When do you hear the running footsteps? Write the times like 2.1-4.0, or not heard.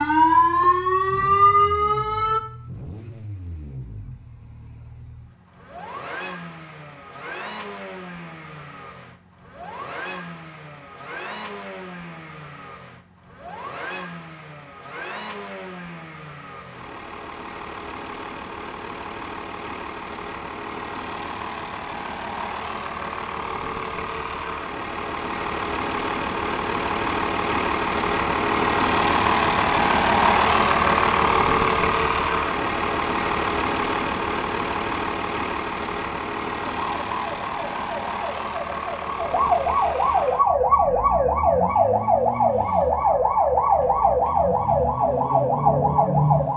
not heard.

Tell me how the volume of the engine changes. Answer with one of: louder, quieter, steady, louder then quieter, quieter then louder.
louder then quieter.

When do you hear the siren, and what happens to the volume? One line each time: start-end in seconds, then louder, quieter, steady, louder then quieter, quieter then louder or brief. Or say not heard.
0.0-2.4 brief
36.9-46.5 louder.